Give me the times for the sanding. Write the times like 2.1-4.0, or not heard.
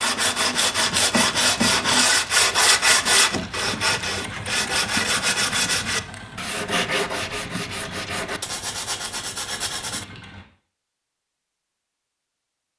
0.0-10.1.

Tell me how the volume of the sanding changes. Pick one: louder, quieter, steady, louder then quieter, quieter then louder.
quieter.